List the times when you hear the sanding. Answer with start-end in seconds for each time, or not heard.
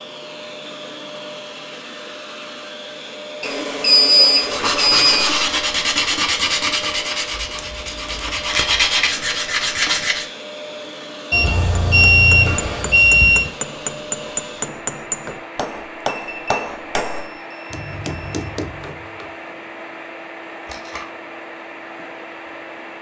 4.3-10.2.